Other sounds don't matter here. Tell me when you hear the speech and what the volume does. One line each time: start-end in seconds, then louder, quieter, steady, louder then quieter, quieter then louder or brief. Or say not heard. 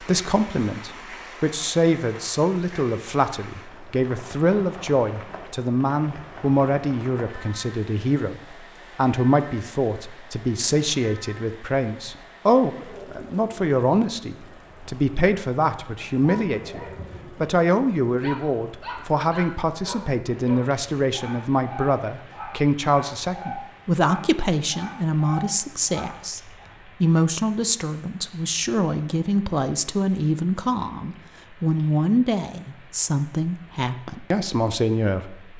0.0-35.5 steady.